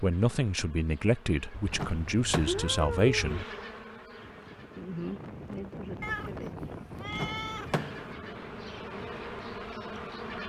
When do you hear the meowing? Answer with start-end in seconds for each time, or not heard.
1.5-3.5, 6.0-7.8.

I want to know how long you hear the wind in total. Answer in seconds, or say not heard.
6 s.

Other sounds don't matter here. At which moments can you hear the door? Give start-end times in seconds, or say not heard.
1.7-2.8, 7.1-8.2.